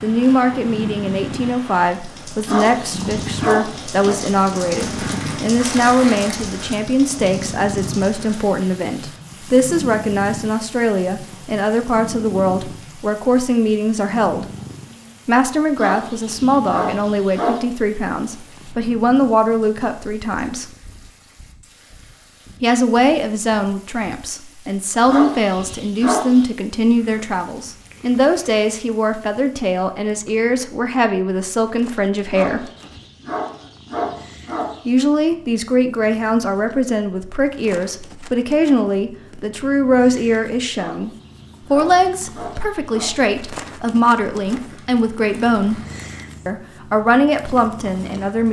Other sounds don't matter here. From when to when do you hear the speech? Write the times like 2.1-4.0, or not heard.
0.0-14.4, 15.2-20.7, 22.6-32.7, 34.9-41.1, 41.7-45.8, 46.5-48.4.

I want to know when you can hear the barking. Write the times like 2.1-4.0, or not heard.
2.5-4.2, 15.8-17.6, 25.1-26.4, 32.3-34.9, 40.8-43.1.